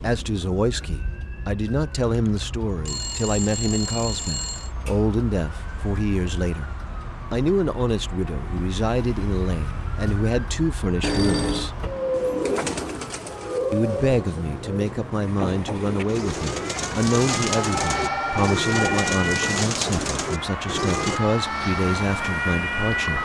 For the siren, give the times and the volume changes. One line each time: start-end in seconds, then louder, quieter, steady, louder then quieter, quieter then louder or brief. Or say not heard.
0.0-23.2 louder.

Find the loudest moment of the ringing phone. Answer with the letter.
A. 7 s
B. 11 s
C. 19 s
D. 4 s
B.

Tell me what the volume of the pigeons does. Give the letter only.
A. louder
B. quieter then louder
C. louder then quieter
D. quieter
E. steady
B.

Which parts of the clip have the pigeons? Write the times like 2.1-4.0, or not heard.
12.1-21.2.